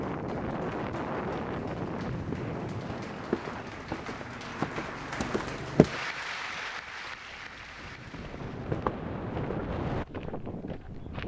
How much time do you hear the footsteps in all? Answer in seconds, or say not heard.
7 s.